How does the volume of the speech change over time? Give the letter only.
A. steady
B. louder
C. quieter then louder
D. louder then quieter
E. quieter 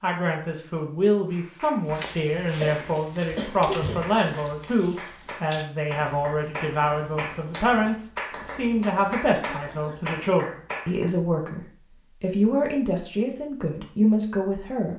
A.